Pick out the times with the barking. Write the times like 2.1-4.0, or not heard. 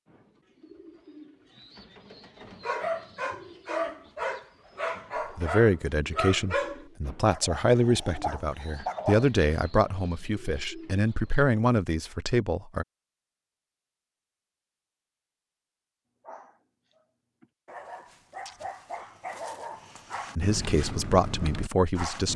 2.6-9.2, 16.2-22.3.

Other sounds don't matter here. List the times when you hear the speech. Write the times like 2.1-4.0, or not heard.
5.3-12.8, 20.4-22.3.